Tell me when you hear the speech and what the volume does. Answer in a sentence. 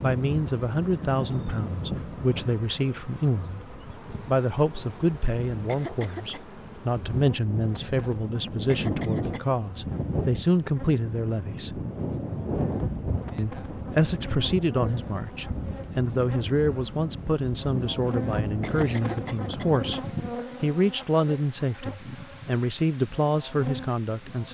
The speech can be heard from 0.0 to 11.8 s, at a steady volume; and from 13.3 to 24.4 s, at a steady volume.